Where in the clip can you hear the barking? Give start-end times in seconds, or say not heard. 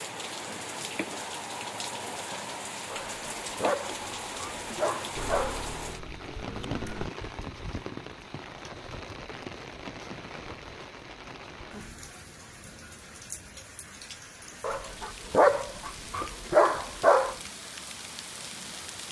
2.9-5.7, 14.6-17.4.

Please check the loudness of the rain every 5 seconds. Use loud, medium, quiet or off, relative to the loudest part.
loud, loud, medium, medium.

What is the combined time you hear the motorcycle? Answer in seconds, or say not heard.
2 s.